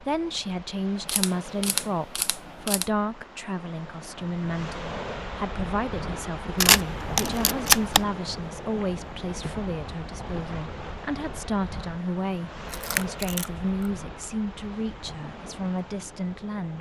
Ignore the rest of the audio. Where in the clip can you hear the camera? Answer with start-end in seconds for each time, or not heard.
1.1-2.9, 6.6-8.1, 12.7-13.9.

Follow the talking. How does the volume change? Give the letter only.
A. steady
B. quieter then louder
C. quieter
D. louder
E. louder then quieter
A.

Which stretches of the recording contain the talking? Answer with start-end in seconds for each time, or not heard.
0.0-16.7.